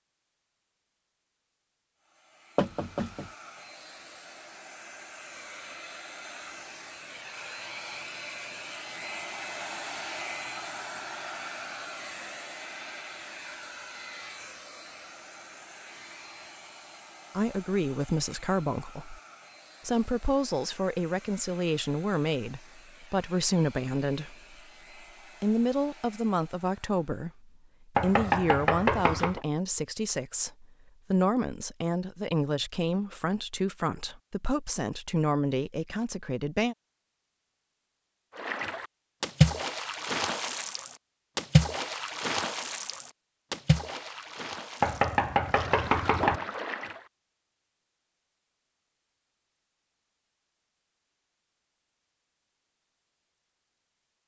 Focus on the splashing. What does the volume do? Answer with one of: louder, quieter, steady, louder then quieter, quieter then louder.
quieter.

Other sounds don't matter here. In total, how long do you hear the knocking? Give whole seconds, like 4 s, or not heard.
4 s.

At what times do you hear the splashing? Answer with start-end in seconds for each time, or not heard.
38.4-47.0.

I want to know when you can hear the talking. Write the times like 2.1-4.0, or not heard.
17.4-19.2, 19.9-24.6, 25.4-36.8.